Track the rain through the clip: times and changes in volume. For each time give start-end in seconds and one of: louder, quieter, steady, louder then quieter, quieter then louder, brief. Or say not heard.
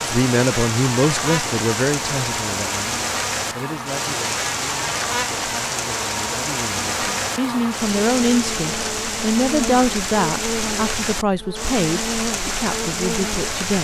0.0-13.8 steady.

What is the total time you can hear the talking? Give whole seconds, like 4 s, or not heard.
14 s.